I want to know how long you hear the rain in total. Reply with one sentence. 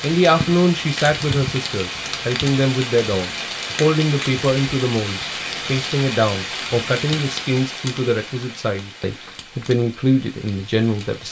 The rain can be heard for 11 seconds in total.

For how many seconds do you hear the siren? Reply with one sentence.
The siren can't be heard in this clip.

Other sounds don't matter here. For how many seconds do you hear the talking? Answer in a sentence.
You can hear the talking for 11 seconds altogether.